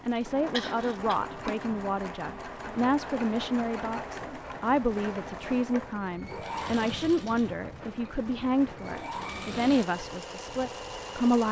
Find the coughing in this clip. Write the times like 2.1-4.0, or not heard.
0.1-1.1.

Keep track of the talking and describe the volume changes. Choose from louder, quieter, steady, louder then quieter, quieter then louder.
steady.